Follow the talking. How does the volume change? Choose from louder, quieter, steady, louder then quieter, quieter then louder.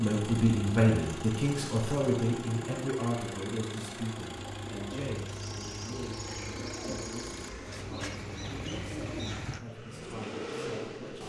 quieter.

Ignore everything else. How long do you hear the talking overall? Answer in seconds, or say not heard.
11 s.